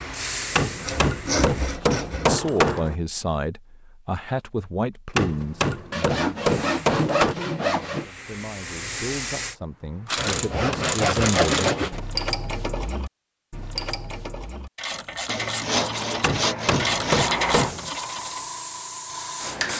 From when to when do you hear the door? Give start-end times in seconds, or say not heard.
not heard.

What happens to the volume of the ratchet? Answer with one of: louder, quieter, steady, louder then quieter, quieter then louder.
quieter then louder.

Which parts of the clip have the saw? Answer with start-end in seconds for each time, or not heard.
0.8-2.4, 5.9-8.1, 10.2-12.0, 15.2-17.2.